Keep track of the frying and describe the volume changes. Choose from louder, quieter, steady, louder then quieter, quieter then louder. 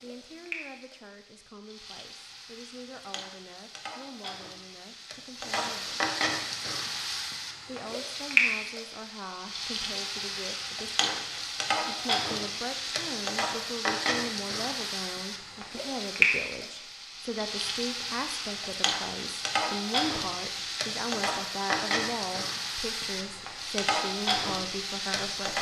louder.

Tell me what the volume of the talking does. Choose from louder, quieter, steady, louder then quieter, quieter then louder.
louder.